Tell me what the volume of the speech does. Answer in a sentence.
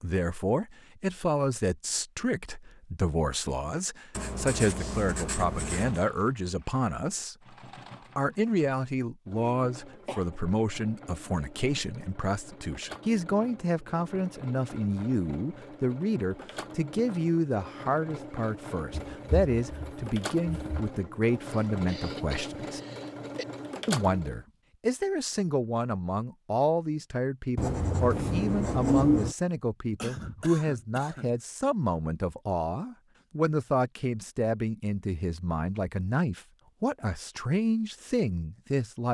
The loudness of the speech stays about the same.